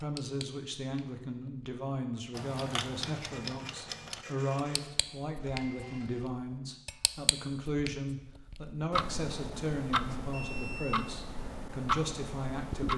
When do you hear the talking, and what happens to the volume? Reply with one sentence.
You can hear the talking from 0.0 to 12.9 s, at a steady volume.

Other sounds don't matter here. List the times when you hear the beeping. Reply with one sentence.
You can hear the beeping from 10.3 to 11.2 s.